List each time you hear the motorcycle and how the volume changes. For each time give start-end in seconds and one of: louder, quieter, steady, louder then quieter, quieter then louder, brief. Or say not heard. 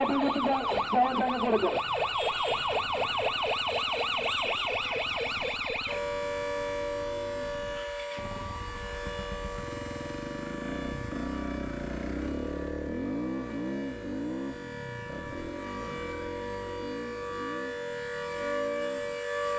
0.1-19.5 louder then quieter.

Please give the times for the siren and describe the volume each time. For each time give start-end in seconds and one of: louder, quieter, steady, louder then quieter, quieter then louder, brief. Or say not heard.
0.0-19.5 quieter then louder.